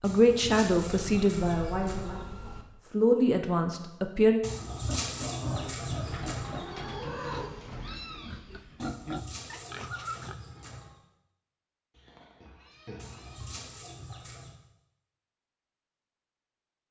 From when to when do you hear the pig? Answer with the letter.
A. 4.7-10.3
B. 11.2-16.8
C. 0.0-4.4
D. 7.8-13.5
A.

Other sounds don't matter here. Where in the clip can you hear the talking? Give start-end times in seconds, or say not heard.
0.0-4.4.